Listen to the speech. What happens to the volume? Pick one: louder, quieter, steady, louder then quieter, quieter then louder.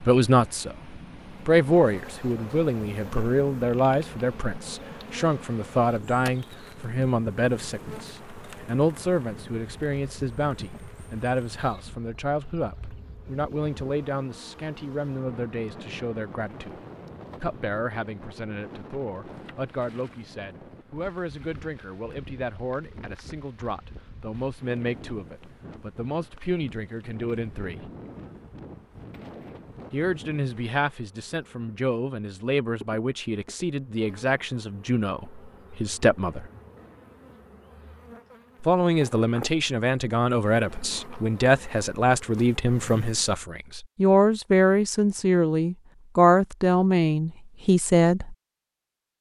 quieter then louder.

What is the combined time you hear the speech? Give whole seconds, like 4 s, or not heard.
44 s.